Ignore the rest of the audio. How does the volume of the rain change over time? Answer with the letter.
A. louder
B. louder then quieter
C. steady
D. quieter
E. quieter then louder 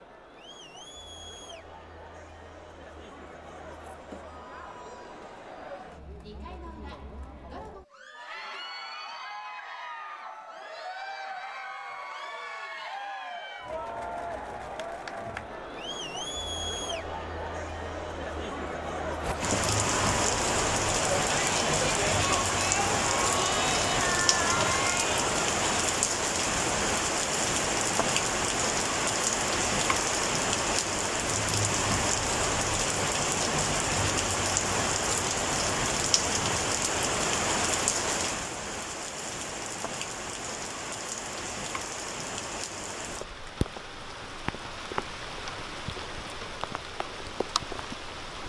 D.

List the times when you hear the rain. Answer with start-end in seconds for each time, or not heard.
19.2-48.4.